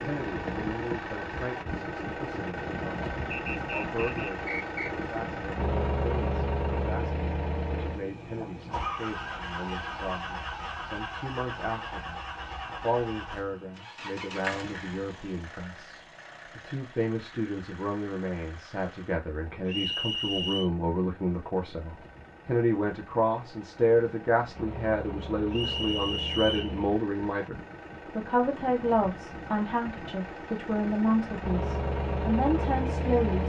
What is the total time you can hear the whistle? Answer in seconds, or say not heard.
4 s.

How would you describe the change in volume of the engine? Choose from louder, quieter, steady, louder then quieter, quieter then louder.
quieter then louder.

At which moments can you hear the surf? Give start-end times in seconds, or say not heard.
not heard.